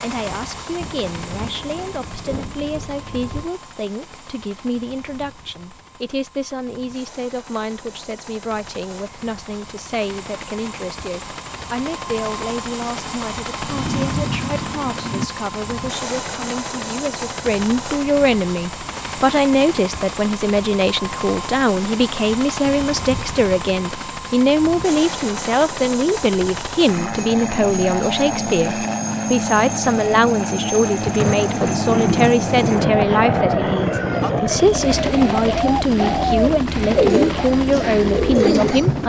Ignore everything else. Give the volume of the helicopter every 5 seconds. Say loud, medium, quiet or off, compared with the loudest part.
quiet, quiet, medium, medium, medium, loud, loud, loud.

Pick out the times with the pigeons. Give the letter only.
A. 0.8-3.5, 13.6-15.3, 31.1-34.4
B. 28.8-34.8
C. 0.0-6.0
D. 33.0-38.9
D.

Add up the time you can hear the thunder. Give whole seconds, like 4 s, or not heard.
8 s.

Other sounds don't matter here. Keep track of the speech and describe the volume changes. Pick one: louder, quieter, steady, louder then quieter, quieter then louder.
louder.